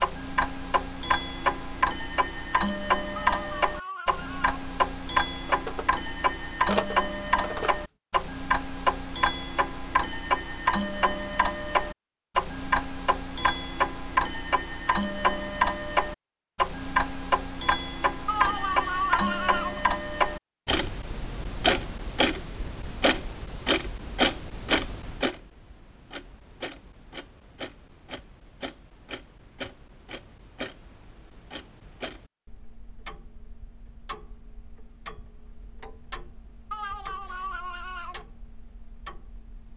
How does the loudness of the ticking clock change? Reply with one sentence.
The volume of the ticking clock goes down.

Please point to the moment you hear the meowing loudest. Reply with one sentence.
The volume of the meowing peaks at 19 seconds.